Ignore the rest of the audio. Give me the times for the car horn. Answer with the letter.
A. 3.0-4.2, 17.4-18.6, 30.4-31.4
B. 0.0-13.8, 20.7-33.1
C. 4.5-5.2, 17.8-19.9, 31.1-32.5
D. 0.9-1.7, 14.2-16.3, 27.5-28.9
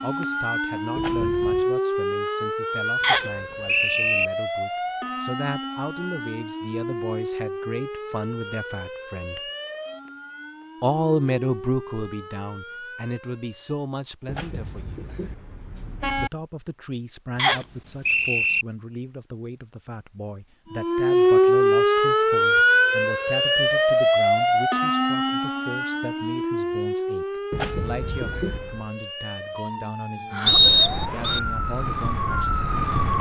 D.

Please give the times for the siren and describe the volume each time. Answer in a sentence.
The siren can be heard from 0.0 to 13.8 s, getting quieter; and from 20.7 to 33.1 s, getting quieter then louder.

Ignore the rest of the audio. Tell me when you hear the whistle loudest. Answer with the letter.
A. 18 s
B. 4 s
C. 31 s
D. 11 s
C.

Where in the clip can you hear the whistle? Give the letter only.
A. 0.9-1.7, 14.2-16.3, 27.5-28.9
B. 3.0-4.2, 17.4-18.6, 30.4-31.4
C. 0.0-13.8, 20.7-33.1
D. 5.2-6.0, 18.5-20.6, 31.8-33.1
B.